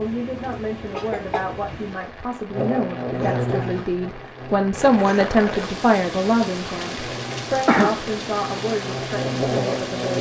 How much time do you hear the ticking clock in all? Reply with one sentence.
You can't hear the ticking clock here.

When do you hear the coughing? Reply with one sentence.
The coughing can be heard from 0.5 to 1.4 s and from 7.7 to 8.1 s.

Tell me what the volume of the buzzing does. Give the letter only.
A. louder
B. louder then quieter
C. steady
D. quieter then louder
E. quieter
D.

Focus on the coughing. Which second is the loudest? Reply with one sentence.
The loudest moment of the coughing is at 8 seconds.